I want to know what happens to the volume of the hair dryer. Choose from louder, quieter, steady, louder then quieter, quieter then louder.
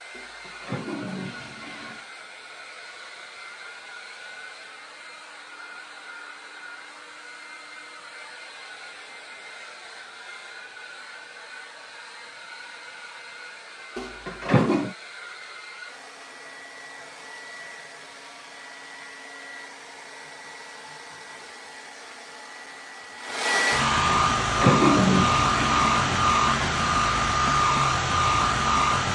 louder.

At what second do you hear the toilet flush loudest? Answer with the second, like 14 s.
25 s.